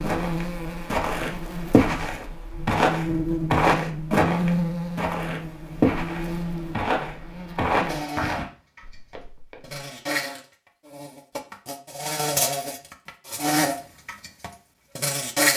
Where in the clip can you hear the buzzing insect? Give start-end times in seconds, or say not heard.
0.0-15.5.